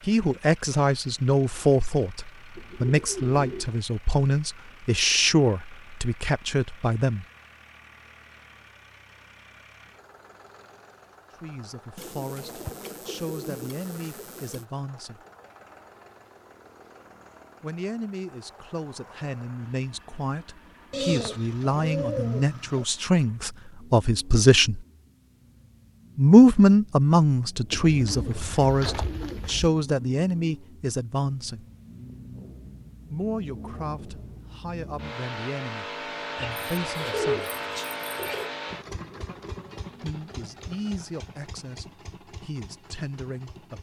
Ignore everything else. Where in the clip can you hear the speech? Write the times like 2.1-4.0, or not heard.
0.0-7.2, 11.3-15.2, 17.6-24.9, 26.1-31.6, 33.1-37.5, 40.0-43.7.